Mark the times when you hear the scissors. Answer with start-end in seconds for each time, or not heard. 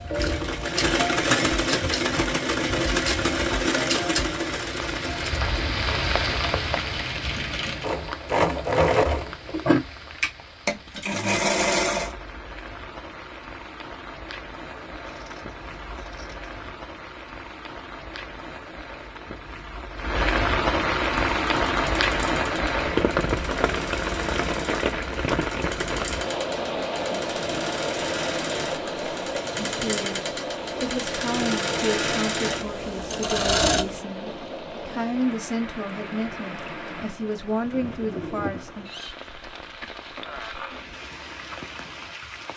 14.7-16.8.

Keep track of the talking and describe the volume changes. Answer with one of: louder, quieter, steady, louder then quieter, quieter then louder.
steady.